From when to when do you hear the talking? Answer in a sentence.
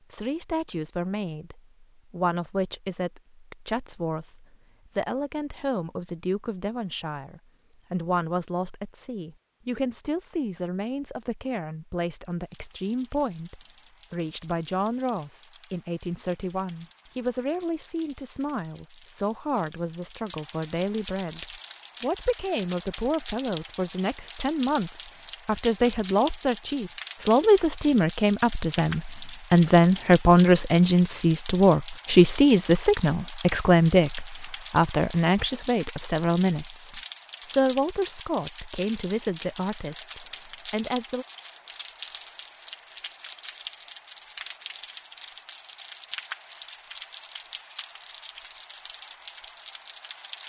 You can hear the talking from 0.1 to 41.2 s.